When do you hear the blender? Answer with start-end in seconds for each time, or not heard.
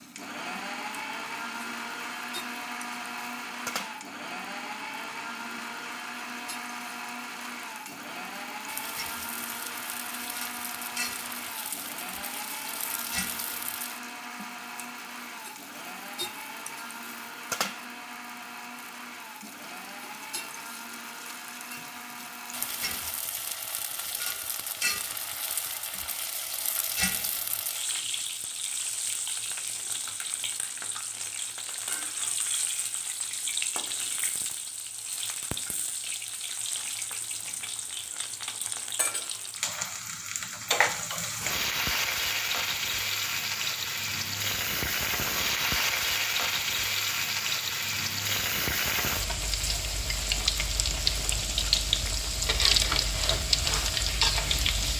0.0-23.1.